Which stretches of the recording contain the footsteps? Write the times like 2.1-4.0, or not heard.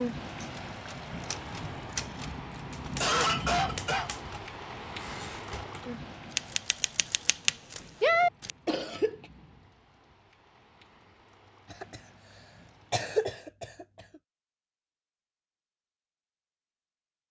not heard.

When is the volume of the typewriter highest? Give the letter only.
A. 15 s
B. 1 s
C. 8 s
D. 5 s
C.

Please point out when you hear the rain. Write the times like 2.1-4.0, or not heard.
0.0-13.4.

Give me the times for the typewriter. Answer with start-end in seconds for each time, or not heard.
0.4-8.5.